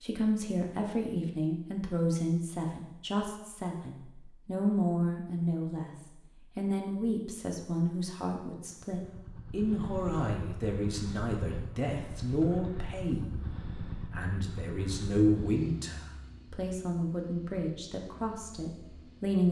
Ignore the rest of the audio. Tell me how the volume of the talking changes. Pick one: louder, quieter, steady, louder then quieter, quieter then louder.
steady.